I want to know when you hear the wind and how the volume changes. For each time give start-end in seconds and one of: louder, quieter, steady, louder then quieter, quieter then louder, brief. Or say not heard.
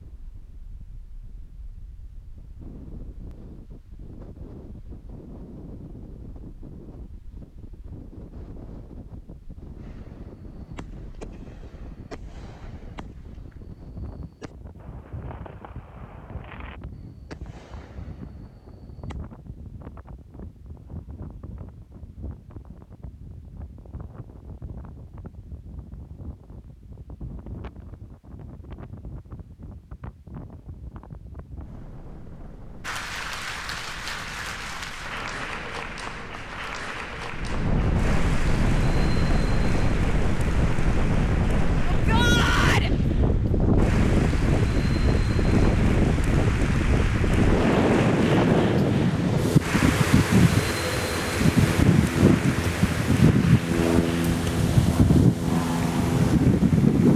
0.0-57.1 louder.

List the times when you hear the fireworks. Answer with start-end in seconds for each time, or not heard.
9.8-19.1.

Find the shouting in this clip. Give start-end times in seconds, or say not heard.
41.9-42.9.